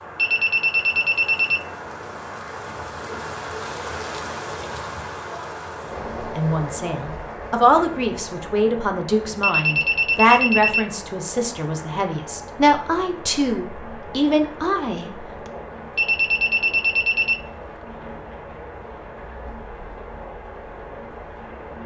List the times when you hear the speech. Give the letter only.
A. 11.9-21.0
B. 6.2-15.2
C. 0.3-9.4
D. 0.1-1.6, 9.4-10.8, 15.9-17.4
B.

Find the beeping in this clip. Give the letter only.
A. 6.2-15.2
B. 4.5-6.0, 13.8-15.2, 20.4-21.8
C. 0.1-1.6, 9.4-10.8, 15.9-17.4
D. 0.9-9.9
C.